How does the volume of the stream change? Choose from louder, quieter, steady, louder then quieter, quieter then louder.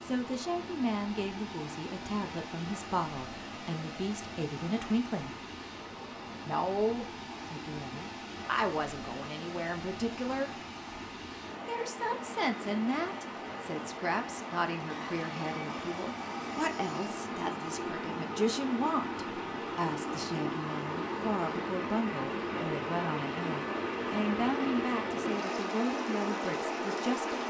louder.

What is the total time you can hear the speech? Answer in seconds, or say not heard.
25 s.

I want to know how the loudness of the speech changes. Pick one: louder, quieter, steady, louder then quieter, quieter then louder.
steady.